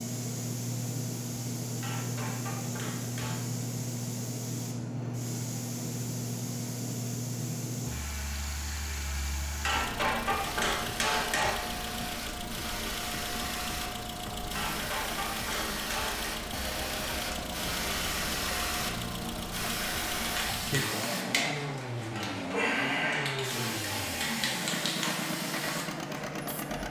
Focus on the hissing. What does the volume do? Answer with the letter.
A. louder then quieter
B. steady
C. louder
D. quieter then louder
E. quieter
C.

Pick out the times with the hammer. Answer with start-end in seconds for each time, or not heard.
1.8-3.4, 9.7-11.6, 14.6-16.4, 22.1-24.1.